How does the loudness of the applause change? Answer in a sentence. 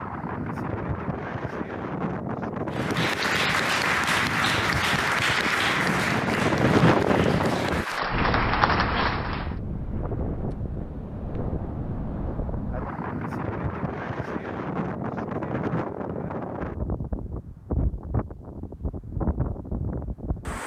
The volume of the applause goes down, then up.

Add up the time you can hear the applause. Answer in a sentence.
The applause can be heard for 7 seconds in total.